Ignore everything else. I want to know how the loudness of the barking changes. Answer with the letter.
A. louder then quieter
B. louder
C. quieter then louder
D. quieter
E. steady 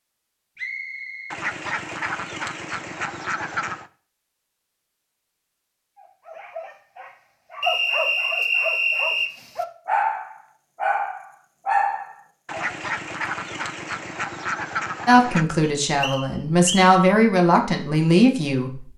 B.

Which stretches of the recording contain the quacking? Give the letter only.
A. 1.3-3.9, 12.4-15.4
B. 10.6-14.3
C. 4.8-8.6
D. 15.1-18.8
A.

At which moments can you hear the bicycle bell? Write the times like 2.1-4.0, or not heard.
not heard.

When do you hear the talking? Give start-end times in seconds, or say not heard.
15.1-18.8.